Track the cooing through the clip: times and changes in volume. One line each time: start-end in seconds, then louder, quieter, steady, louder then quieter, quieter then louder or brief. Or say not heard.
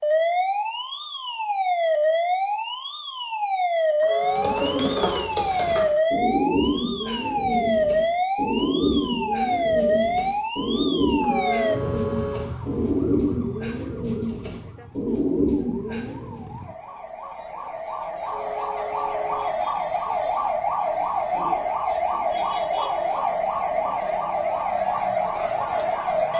4.2-16.4 steady.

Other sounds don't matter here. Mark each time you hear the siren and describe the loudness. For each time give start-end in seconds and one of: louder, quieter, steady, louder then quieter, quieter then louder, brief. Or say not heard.
0.0-26.3 quieter then louder.